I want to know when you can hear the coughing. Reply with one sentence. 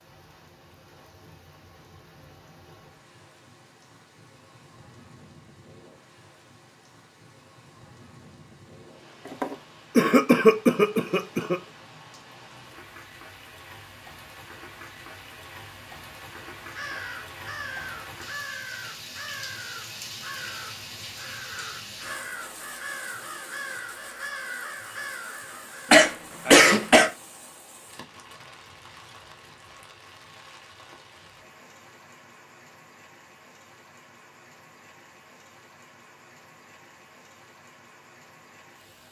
The coughing can be heard from 9.2 to 11.6 s and from 25.9 to 27.1 s.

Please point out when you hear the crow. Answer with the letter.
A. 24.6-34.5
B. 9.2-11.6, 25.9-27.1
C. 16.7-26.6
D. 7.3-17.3
C.